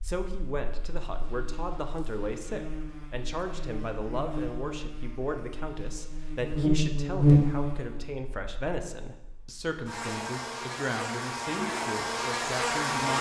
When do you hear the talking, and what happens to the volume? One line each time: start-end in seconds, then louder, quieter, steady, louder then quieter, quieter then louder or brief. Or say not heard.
0.0-13.1 steady.